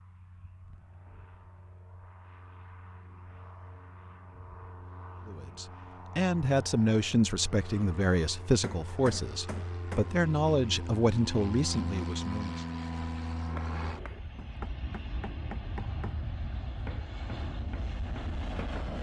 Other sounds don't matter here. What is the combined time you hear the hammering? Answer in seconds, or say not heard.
7 s.